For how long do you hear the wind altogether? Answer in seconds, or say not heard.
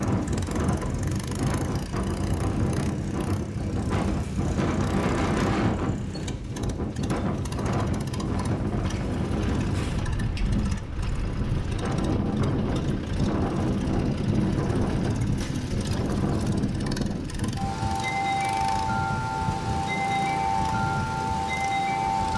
22 s.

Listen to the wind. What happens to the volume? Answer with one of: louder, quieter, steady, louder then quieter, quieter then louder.
steady.